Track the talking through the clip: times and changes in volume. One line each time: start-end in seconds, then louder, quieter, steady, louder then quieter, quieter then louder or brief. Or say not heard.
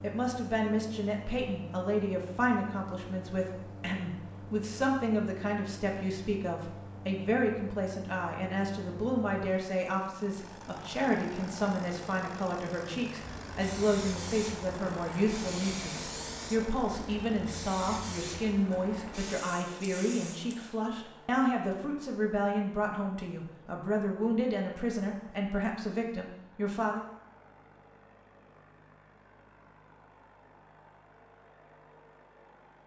0.0-27.1 steady.